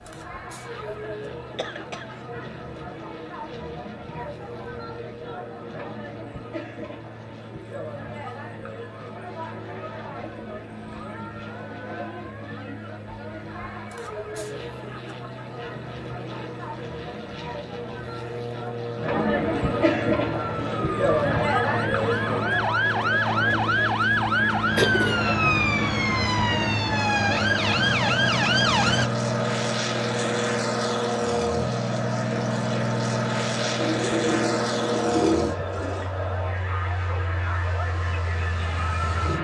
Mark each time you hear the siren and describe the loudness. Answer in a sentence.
The siren can be heard from 20.2 to 29.1 s, getting louder.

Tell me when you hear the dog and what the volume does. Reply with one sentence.
You can't hear the dog here.